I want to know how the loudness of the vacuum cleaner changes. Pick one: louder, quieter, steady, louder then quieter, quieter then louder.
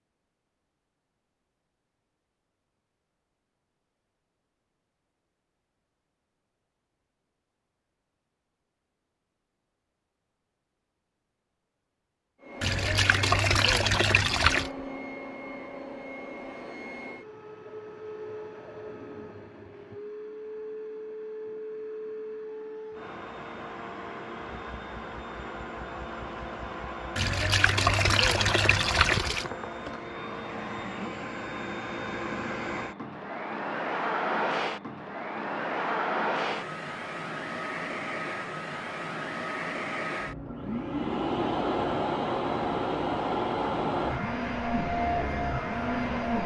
louder.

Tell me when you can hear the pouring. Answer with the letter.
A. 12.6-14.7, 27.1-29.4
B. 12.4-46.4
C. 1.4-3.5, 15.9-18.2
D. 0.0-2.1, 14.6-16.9
A.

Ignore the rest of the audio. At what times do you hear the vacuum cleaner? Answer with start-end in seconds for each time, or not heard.
12.4-46.4.